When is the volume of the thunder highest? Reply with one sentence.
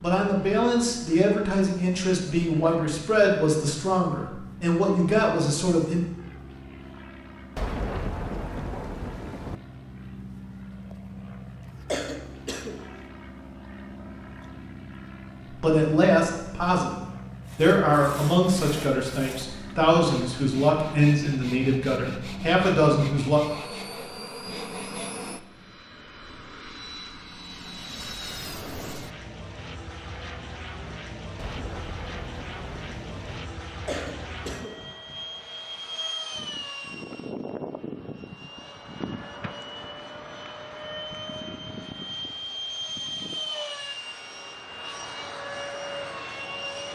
The loudest moment of the thunder is at 8 seconds.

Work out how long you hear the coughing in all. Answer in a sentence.
You can hear the coughing for 2 seconds altogether.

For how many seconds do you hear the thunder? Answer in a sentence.
You can hear the thunder for 4 seconds altogether.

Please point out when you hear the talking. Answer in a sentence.
You can hear the talking from 0.0 to 6.0 s and from 15.5 to 23.4 s.